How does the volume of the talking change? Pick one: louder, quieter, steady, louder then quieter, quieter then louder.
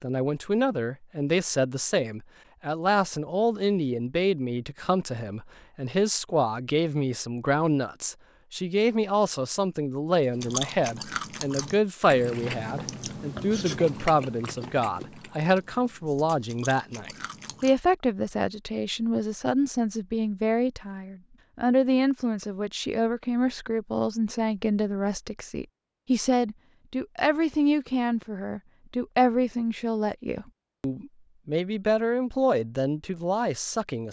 steady.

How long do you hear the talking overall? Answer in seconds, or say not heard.
34 s.